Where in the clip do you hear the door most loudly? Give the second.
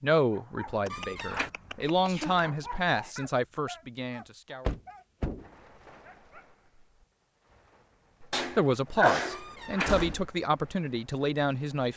10 s.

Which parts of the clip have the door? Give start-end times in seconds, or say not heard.
0.9-1.5, 4.7-5.5, 9.3-10.2.